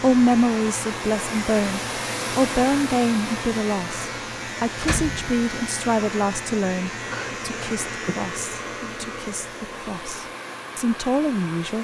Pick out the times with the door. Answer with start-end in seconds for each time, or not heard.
4.8-5.4.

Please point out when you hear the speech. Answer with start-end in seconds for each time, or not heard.
0.0-11.7.